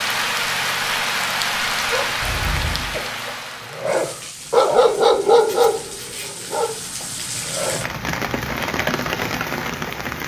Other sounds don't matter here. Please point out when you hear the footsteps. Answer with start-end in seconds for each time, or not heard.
not heard.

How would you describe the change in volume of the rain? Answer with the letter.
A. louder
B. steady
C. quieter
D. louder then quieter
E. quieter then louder
E.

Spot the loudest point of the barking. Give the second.
5 s.